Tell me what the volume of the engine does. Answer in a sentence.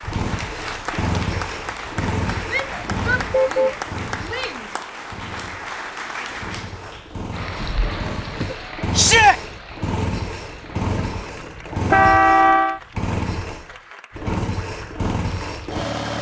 The loudness of the engine goes down, then up.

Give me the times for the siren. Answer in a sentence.
You can't hear the siren here.